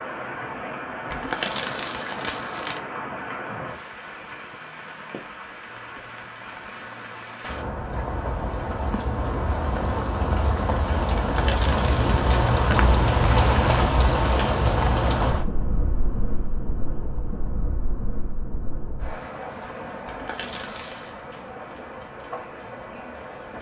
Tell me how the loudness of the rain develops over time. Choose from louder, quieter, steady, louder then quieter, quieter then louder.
louder then quieter.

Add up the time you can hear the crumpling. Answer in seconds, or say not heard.
4 s.